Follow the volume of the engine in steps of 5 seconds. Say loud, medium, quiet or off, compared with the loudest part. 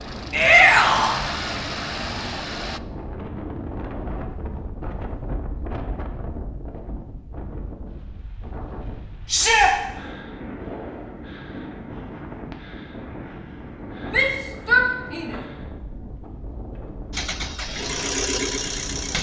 loud, off, off, loud.